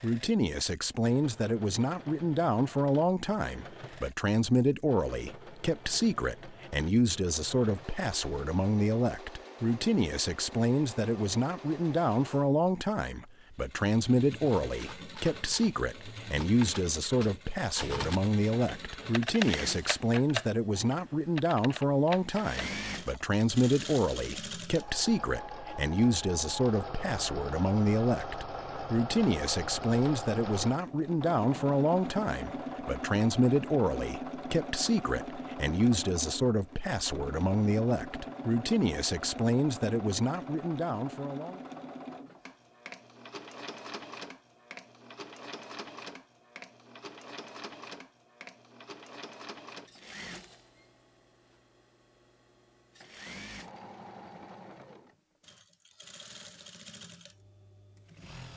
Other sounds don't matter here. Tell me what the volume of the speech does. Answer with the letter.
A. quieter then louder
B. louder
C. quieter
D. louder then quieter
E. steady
E.